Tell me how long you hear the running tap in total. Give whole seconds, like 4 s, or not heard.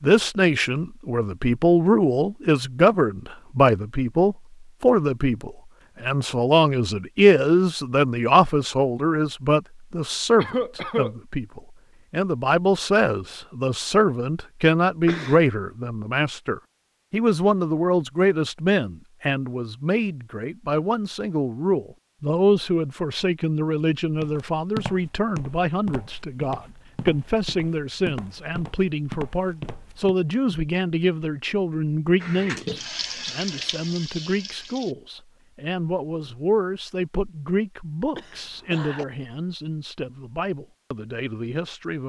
3 s.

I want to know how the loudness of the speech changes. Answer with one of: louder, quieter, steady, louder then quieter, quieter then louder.
quieter.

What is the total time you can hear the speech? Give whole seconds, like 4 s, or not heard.
42 s.